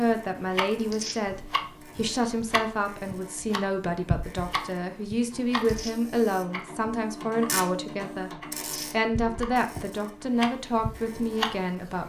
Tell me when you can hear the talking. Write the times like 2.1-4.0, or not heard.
0.0-12.0.